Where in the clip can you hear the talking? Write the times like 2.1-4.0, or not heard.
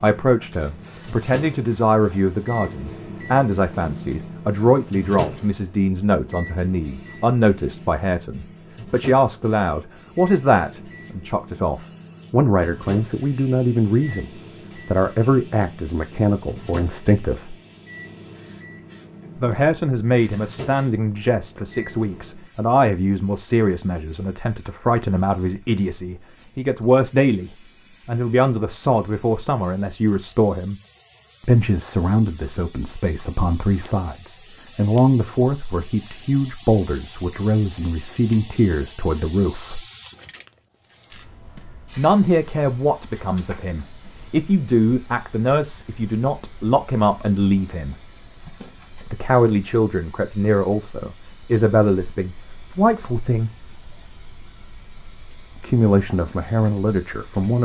0.0-17.6, 19.4-30.8, 31.4-39.8, 42.0-48.0, 49.1-53.5, 55.6-57.6.